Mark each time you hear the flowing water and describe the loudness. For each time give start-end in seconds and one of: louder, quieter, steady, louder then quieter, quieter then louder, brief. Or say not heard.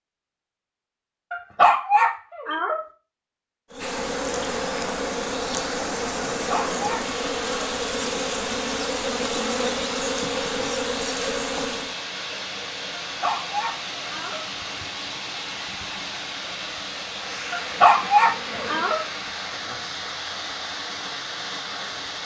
3.8-22.2 steady.